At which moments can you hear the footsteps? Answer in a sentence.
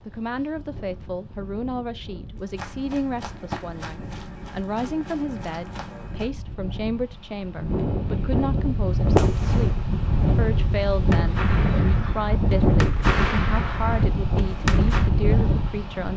You can hear the footsteps from 2.4 to 6.3 s.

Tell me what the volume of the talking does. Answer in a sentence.
The volume of the talking stays about the same.